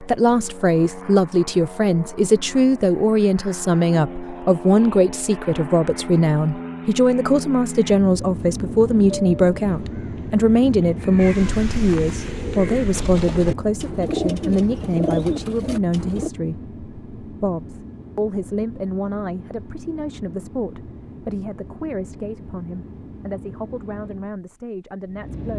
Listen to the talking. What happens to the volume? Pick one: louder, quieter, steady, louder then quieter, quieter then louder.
quieter.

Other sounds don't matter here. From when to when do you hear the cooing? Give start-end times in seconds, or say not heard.
9.8-16.3.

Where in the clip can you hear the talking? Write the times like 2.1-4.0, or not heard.
0.0-25.5.